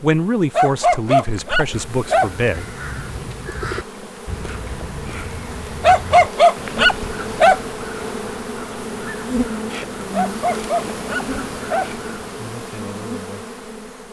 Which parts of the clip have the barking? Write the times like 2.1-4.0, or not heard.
0.5-2.3, 5.8-7.6, 10.1-11.9.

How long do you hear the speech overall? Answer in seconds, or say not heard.
3 s.